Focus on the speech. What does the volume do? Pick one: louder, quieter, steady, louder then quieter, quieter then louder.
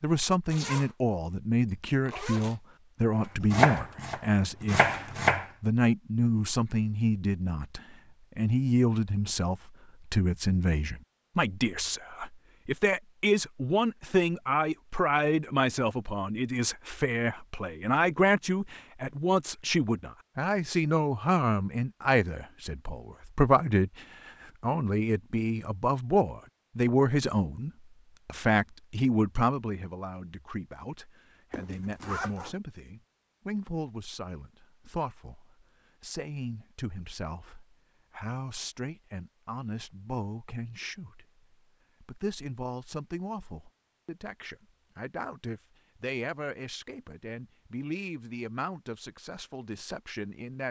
quieter.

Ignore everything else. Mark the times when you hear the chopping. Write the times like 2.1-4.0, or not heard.
3.4-5.5.